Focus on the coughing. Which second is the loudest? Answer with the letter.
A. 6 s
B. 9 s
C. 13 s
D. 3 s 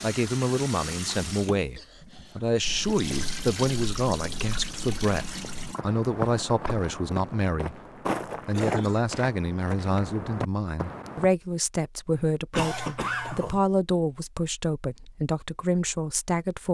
C.